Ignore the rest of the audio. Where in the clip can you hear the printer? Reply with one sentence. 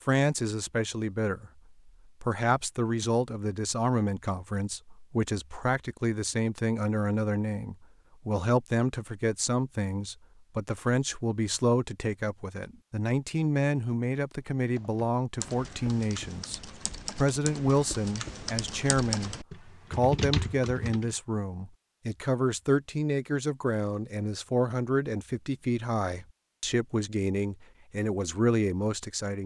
You can't hear the printer here.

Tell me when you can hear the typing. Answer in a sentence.
The typing can be heard from 14.8 to 21.1 s.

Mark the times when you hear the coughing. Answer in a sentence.
You can't hear the coughing here.